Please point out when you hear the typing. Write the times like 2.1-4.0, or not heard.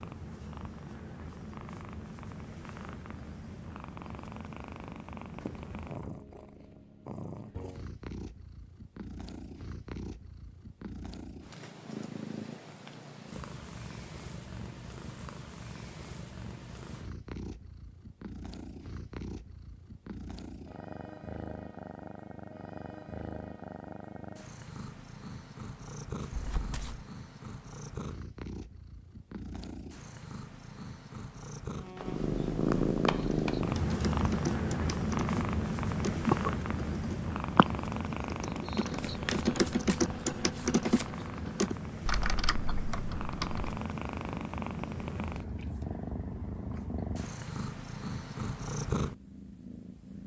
33.0-43.8.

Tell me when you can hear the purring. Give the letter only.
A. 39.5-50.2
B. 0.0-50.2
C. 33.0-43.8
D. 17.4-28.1
B.